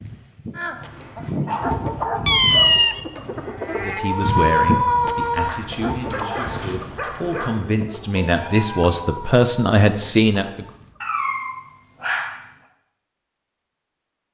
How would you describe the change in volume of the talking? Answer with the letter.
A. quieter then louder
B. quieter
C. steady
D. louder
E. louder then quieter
A.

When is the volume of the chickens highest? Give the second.
5 s.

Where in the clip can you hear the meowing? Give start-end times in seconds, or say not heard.
2.2-3.0, 8.2-9.2.